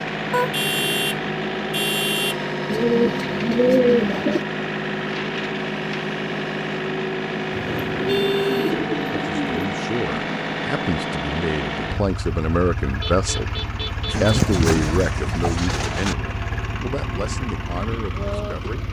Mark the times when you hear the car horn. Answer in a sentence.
You can hear the car horn from 0.3 to 2.4 s, from 7.7 to 8.8 s and from 13.0 to 14.6 s.